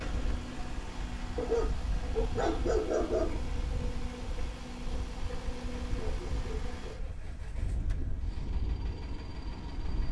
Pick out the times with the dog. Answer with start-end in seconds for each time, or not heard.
1.4-3.4, 6.0-7.0.